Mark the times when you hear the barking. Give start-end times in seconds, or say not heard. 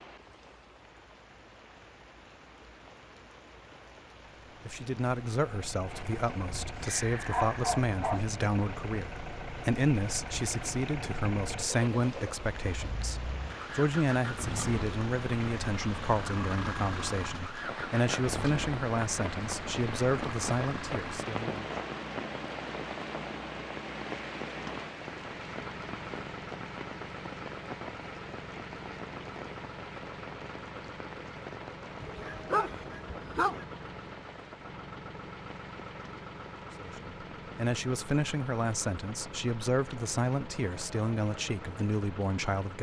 6.5-8.2, 32.0-33.6.